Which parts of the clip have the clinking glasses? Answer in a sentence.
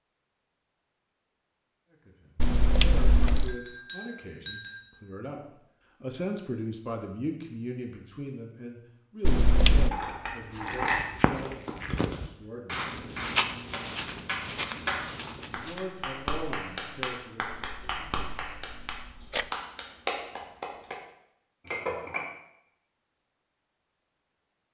The clinking glasses can be heard from 3.5 to 4.8 s, from 9.9 to 11.1 s and from 21.6 to 22.2 s.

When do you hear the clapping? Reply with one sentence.
The clapping can be heard from 11.4 to 20.9 s.